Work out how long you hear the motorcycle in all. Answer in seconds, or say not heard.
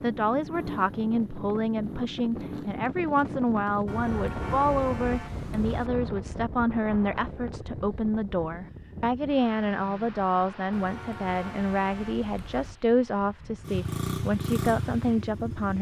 5 s.